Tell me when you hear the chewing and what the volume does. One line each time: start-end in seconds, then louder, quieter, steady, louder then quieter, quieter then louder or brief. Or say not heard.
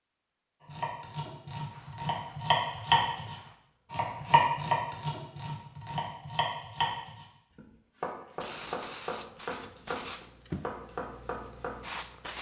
not heard.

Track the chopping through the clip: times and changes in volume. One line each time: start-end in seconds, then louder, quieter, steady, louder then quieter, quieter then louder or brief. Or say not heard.
0.7-12.1 quieter.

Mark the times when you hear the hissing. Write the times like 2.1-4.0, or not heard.
1.7-4.3, 8.4-12.3.